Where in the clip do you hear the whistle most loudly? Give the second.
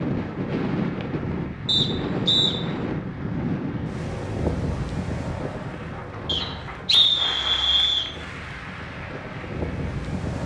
7 s.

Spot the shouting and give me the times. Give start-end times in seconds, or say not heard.
not heard.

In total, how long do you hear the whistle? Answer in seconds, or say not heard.
3 s.